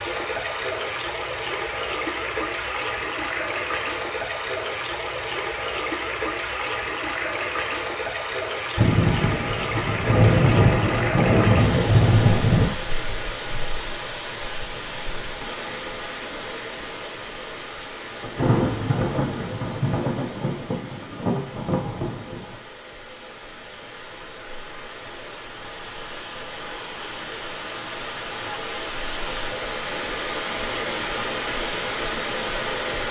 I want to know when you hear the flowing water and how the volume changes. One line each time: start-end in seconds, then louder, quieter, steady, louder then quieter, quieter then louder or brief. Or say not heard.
0.0-33.0 quieter then louder.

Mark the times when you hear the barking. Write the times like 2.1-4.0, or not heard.
not heard.